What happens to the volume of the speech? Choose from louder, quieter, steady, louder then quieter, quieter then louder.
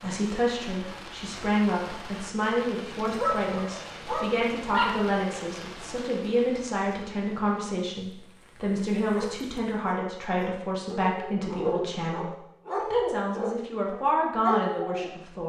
steady.